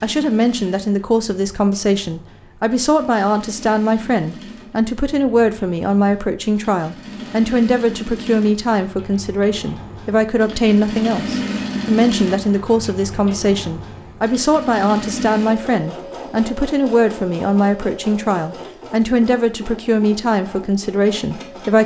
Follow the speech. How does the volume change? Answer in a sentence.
The volume of the speech stays about the same.